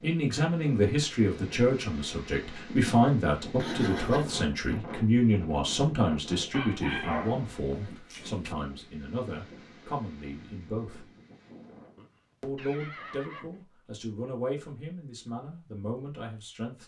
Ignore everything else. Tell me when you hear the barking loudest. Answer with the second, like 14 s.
7 s.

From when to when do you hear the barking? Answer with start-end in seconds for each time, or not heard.
6.5-8.6.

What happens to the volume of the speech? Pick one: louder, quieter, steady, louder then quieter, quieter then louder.
quieter.